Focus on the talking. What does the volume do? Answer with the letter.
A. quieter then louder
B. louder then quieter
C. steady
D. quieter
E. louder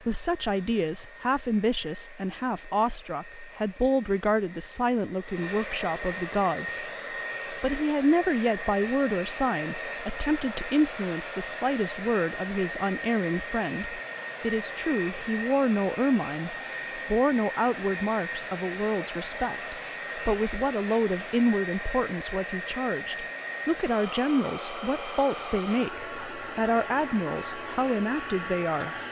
C.